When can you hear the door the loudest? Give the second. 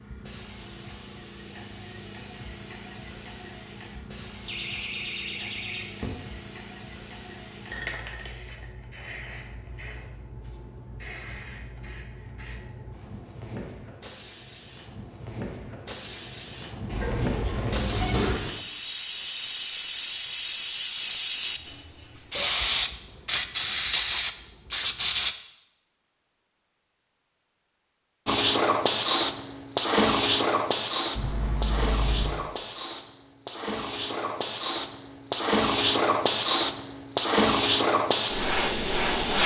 18 s.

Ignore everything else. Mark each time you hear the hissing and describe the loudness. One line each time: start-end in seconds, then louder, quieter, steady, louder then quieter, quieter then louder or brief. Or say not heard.
0.0-25.4 louder
28.2-39.4 quieter then louder.